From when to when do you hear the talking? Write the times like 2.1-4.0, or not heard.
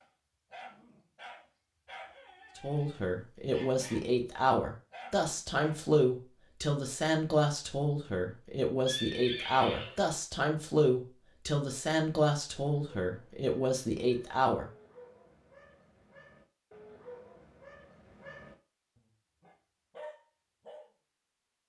2.5-14.7.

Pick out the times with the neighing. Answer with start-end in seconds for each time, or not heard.
8.8-10.1.